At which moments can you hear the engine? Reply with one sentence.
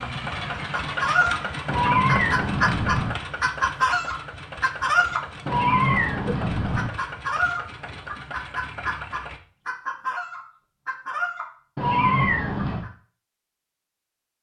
The engine can be heard from 0.0 to 9.4 s.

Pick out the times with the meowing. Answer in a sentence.
The meowing can be heard from 1.6 to 3.1 s, from 5.5 to 6.9 s and from 11.8 to 12.8 s.